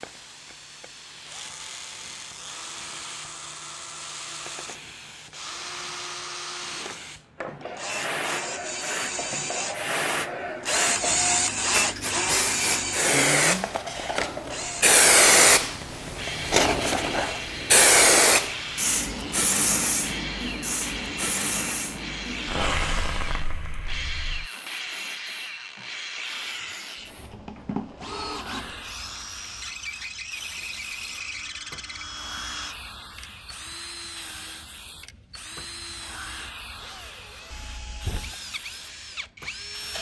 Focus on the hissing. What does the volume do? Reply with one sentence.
The loudness of the hissing goes up, then down.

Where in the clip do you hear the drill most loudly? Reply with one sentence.
The volume of the drill peaks at 11 seconds.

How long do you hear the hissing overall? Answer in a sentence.
You can hear the hissing for 40 seconds altogether.